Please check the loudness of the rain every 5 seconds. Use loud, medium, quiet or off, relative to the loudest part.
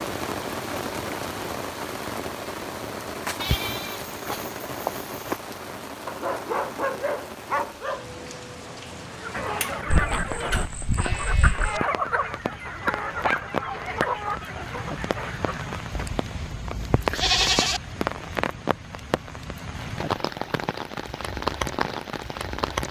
loud, medium, medium, loud, loud.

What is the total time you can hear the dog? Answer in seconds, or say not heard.
3 s.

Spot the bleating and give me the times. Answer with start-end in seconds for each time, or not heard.
3.4-5.4, 9.9-11.8, 15.9-17.8.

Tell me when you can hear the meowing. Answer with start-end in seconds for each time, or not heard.
not heard.